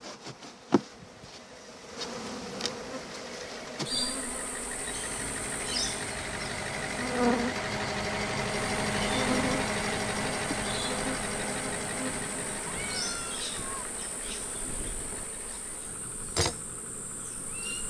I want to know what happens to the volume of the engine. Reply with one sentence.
The volume of the engine goes up, then down.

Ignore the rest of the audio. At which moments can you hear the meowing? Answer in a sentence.
You can hear the meowing from 12.7 to 13.8 s.